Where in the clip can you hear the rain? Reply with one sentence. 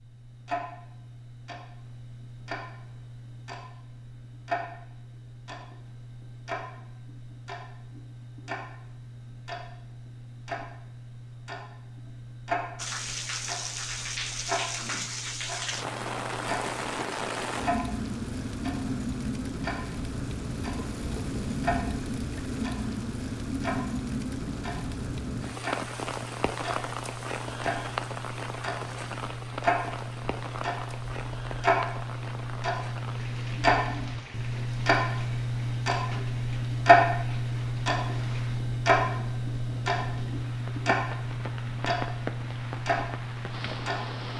You can hear the rain from 12.8 to 44.3 s.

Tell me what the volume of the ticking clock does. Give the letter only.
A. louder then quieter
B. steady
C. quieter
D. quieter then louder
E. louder
E.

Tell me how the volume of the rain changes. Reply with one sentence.
The loudness of the rain goes down.